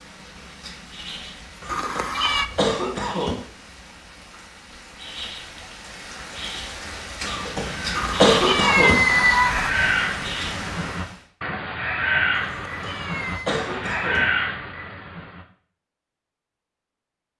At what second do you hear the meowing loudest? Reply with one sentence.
The loudest moment of the meowing is at 9 seconds.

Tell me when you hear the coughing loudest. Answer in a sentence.
The volume of the coughing peaks at 8 seconds.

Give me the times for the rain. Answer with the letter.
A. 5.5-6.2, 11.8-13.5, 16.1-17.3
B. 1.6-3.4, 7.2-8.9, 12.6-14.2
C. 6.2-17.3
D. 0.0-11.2
D.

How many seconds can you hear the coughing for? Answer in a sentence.
You can hear the coughing for 5 seconds altogether.